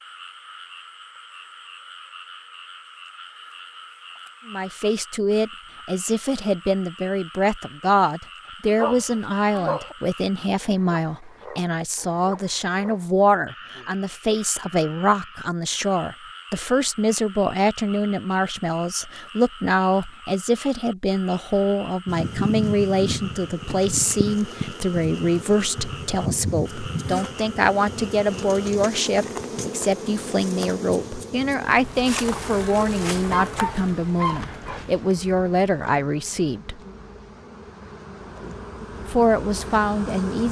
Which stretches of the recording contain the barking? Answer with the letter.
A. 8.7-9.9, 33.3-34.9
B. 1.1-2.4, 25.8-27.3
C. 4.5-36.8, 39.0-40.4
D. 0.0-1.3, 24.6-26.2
A.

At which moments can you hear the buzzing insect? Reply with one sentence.
You can hear the buzzing insect from 22.1 to 40.4 s.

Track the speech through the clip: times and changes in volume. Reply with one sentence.
The speech can be heard from 4.5 to 36.8 s, at a steady volume; and briefly from 39.0 to 40.4 s.